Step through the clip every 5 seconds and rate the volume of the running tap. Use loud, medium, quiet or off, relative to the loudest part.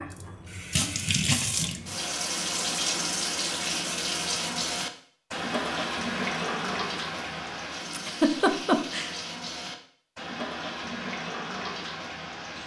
loud, loud, medium.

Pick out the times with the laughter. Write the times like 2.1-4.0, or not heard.
7.9-9.2.